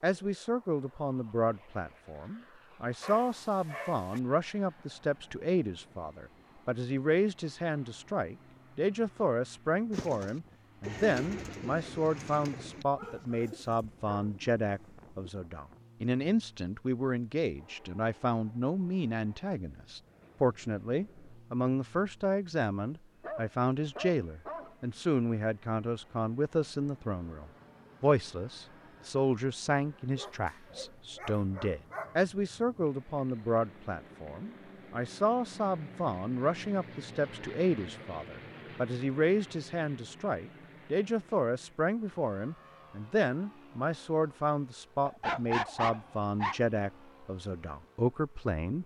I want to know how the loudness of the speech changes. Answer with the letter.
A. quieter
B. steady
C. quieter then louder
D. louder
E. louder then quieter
B.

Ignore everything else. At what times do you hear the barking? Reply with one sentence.
You can hear the barking from 3.0 to 4.2 s, from 12.9 to 14.3 s, from 23.2 to 24.8 s, from 30.1 to 32.2 s and from 45.0 to 46.6 s.